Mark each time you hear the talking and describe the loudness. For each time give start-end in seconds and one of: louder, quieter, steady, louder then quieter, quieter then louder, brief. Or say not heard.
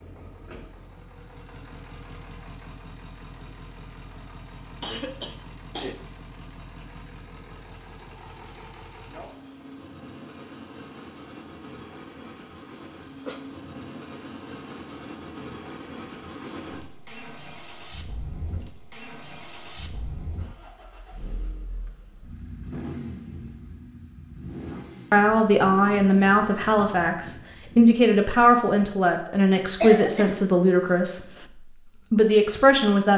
25.1-33.1 steady.